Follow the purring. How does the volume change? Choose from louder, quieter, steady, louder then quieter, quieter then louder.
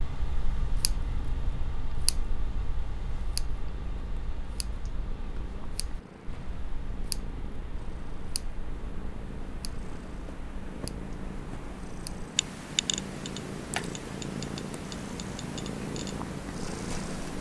louder.